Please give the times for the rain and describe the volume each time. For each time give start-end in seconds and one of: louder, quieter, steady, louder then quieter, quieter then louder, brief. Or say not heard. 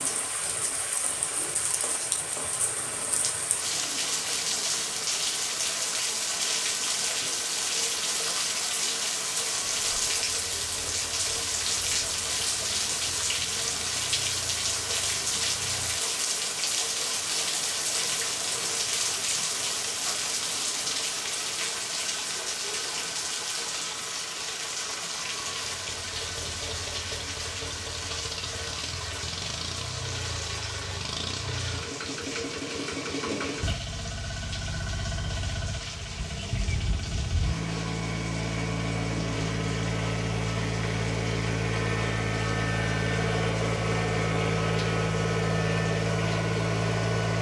0.0-47.3 quieter.